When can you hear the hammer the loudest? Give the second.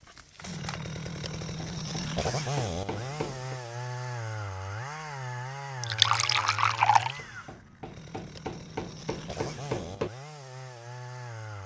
10 s.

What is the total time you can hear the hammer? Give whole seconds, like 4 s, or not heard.
5 s.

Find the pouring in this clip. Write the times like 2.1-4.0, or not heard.
5.8-7.2.